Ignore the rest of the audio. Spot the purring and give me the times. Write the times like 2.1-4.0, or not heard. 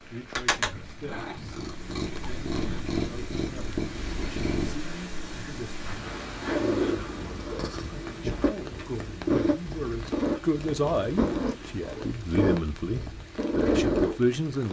0.1-14.2.